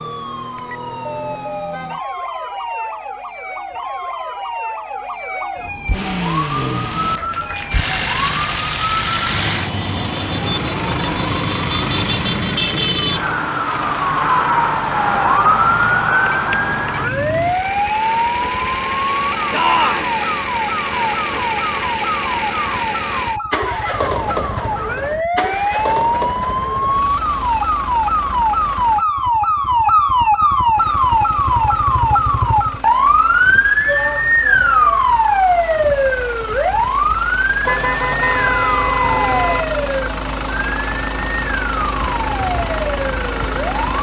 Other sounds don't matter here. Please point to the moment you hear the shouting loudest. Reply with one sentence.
The loudest moment of the shouting is at 20 seconds.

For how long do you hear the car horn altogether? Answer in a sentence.
The car horn can be heard for 2 seconds in total.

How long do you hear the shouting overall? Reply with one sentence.
You can hear the shouting for 2 seconds altogether.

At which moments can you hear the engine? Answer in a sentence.
You can hear the engine from 5.9 to 29.1 s and from 30.7 to 43.9 s.